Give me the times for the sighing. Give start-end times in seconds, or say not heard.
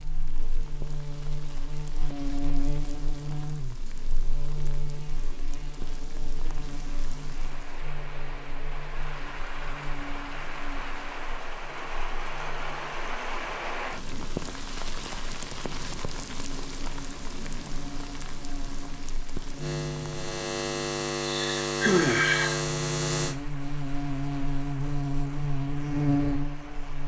21.2-22.6.